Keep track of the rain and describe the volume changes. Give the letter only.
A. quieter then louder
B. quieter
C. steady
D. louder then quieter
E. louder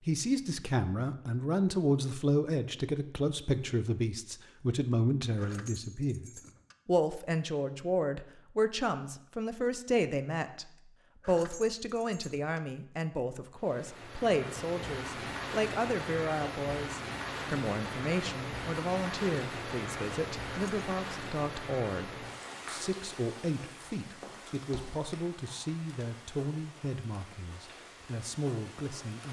B.